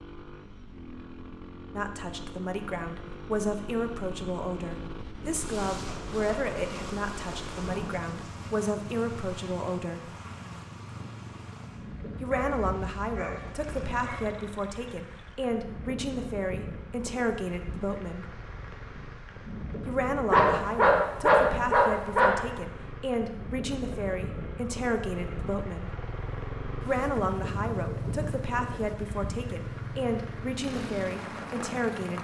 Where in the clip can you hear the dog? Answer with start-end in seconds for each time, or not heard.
12.3-14.3, 20.3-22.3.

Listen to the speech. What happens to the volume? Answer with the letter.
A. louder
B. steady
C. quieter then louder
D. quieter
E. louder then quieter
B.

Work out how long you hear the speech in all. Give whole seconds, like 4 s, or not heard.
26 s.